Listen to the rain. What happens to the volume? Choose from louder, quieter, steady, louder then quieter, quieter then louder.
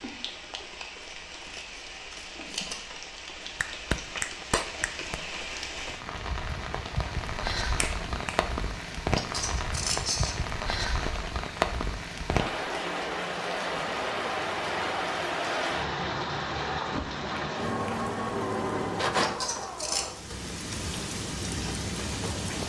louder.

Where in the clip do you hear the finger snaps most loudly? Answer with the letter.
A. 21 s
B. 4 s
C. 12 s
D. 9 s
B.